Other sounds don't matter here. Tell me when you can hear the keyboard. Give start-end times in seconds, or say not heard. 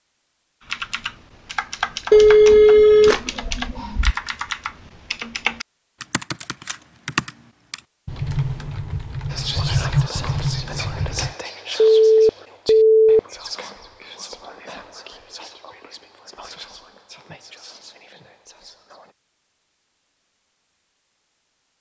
0.7-11.3.